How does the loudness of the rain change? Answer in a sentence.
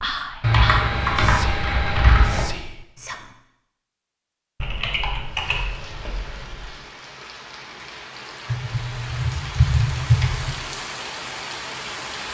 The volume of the rain goes up.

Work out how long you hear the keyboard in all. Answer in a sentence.
The keyboard can be heard for 6 seconds in total.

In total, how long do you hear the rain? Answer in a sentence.
The rain can be heard for 7 seconds in total.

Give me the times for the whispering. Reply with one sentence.
You can hear the whispering from 0.0 to 3.4 s.